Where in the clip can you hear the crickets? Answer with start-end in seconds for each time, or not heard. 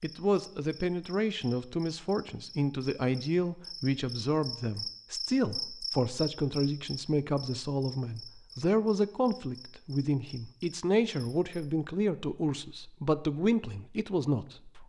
0.0-11.7.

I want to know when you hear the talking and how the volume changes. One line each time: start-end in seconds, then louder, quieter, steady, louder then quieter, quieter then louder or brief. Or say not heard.
0.0-14.8 steady.